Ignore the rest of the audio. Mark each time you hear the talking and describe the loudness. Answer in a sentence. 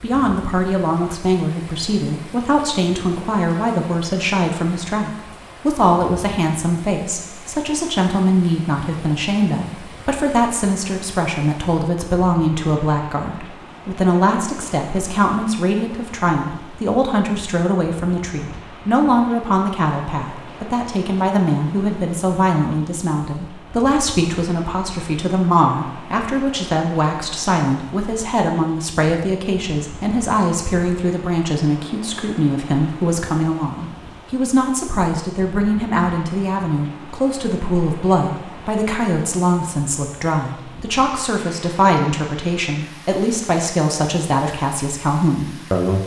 You can hear the talking from 0.0 to 46.0 s, at a steady volume.